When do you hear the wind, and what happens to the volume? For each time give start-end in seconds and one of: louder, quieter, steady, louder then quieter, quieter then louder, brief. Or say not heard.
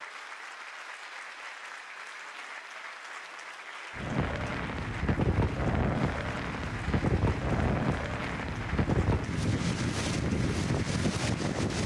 4.0-11.8 steady.